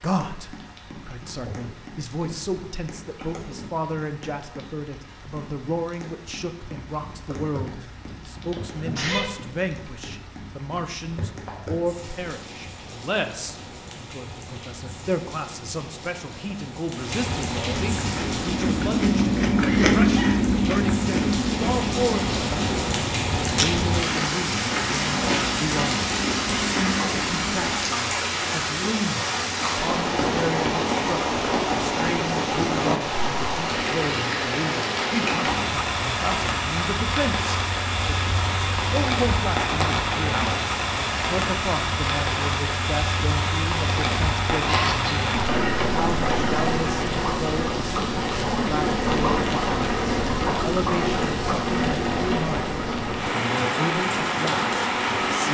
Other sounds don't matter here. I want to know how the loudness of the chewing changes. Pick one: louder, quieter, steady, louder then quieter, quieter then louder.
quieter.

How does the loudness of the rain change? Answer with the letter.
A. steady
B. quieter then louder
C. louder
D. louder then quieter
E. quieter
C.